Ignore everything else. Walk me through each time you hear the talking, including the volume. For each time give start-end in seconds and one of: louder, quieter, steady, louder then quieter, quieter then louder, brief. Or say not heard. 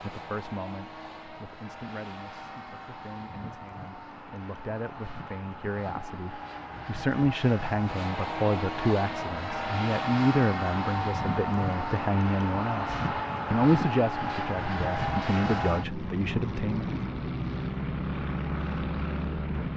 0.0-16.9 louder.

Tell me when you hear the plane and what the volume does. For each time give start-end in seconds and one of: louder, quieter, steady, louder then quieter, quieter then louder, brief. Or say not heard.
0.0-19.7 louder.